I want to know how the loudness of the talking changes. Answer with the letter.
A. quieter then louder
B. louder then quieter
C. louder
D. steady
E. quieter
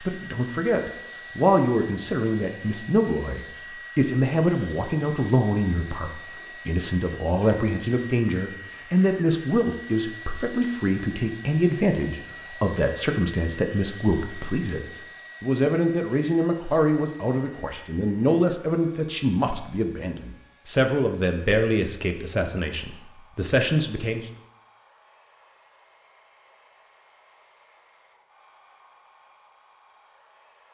D.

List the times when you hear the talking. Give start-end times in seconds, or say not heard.
0.0-24.3.